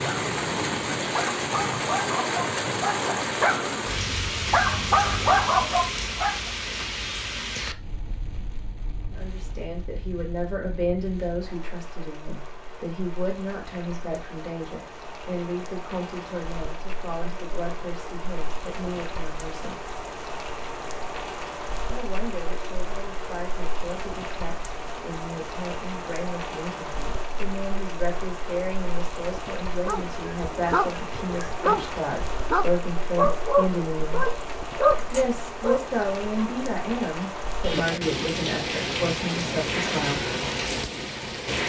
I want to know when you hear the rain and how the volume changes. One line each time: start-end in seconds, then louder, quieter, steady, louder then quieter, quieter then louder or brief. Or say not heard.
0.0-41.6 quieter then louder.